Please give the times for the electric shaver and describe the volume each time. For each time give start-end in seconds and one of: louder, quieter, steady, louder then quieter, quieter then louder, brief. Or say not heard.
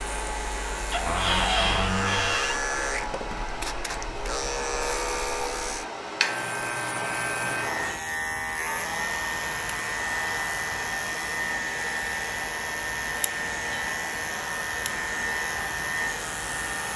0.0-16.9 steady.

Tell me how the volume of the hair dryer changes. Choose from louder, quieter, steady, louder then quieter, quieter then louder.
steady.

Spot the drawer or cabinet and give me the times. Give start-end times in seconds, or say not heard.
0.9-2.6.